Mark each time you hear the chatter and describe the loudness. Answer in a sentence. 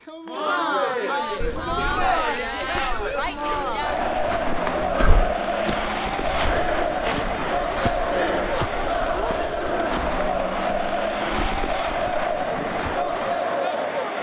You can hear the chatter from 0.0 to 14.1 s, at a steady volume.